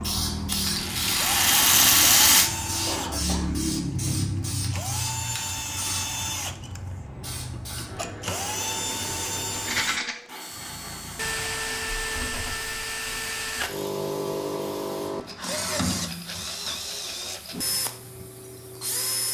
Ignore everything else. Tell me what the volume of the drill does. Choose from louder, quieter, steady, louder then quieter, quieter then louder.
steady.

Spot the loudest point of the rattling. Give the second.
2 s.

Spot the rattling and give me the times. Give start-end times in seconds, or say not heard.
0.5-2.5, 9.5-10.2, 15.2-17.7.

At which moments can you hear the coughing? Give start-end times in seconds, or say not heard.
2.9-4.2.